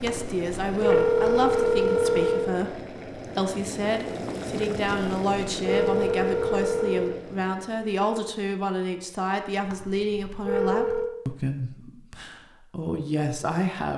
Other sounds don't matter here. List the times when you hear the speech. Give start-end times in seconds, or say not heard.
0.0-13.9.